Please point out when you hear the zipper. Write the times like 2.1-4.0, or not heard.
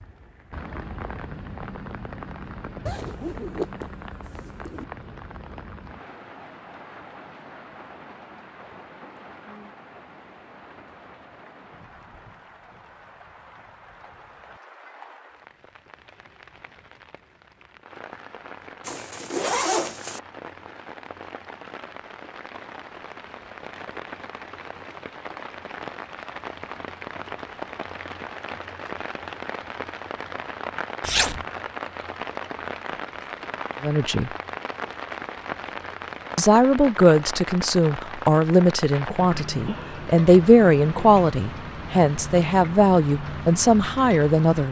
2.9-4.8, 18.8-20.2, 31.0-31.4.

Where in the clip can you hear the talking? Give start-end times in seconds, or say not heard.
33.8-34.3, 36.4-44.6.